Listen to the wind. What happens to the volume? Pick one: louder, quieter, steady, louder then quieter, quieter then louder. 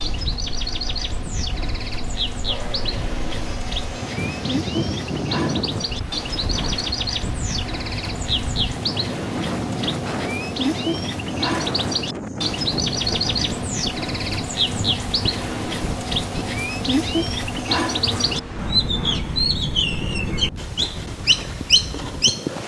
louder then quieter.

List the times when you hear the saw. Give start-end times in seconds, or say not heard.
2.5-4.6, 17.9-19.2.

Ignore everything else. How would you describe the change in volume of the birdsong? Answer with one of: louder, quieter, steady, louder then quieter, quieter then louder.
louder.